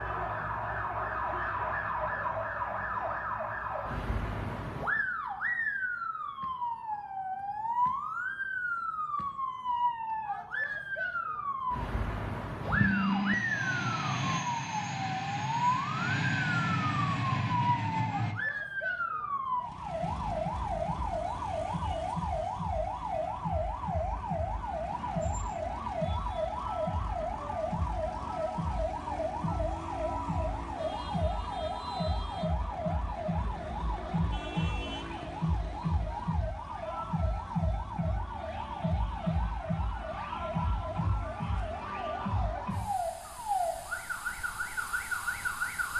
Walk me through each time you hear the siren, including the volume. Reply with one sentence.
The siren can be heard from 0.0 to 45.9 s, at a steady volume.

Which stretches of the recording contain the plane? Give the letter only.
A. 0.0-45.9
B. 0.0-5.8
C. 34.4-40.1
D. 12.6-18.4
D.